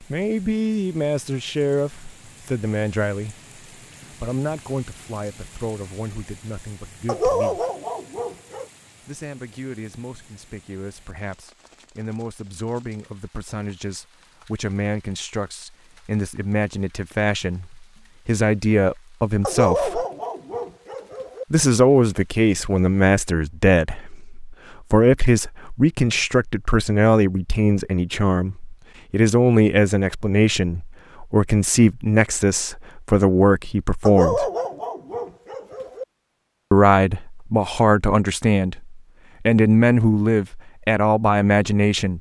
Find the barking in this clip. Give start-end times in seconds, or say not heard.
7.0-8.7, 19.4-21.4, 34.0-36.0.